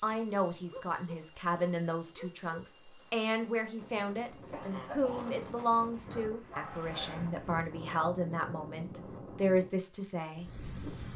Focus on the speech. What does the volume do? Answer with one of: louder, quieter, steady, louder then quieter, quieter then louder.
steady.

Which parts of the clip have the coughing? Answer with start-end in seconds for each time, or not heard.
4.5-5.3.